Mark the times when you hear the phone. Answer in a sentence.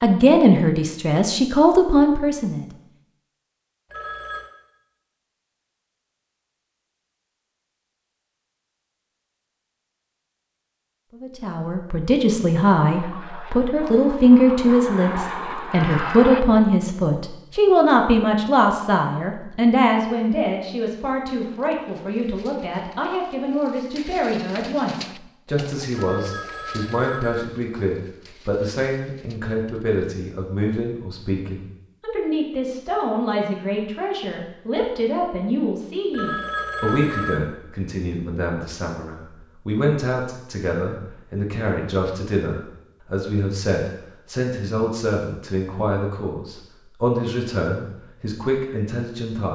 You can hear the phone from 3.9 to 4.5 s, from 25.9 to 27.4 s and from 36.1 to 37.4 s.